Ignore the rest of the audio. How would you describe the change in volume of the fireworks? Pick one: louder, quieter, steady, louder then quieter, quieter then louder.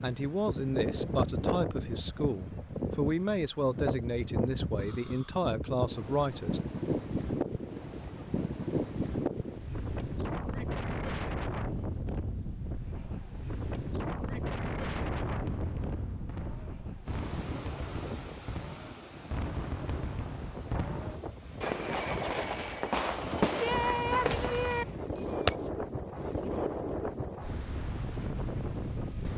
louder.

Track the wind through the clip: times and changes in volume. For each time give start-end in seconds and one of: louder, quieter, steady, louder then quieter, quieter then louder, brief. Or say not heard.
0.0-29.3 quieter then louder.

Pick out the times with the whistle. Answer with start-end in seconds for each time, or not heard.
not heard.